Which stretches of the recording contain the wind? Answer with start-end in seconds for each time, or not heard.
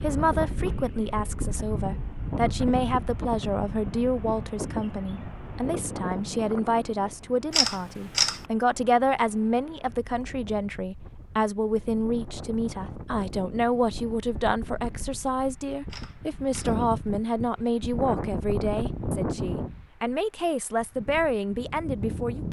0.0-22.4.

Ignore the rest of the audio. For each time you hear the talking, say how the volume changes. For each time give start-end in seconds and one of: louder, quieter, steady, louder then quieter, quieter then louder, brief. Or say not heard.
0.0-22.4 steady.